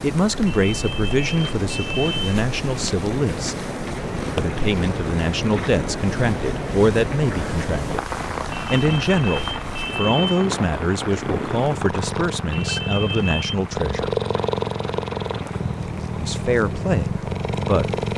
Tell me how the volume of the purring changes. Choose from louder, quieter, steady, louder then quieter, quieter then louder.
louder.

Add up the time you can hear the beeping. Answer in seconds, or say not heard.
5 s.